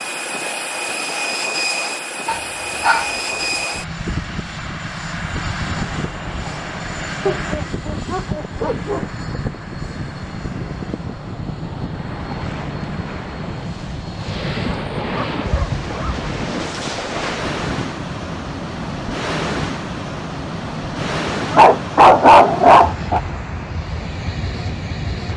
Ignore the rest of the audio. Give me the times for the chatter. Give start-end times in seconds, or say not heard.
not heard.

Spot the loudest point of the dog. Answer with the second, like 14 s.
22 s.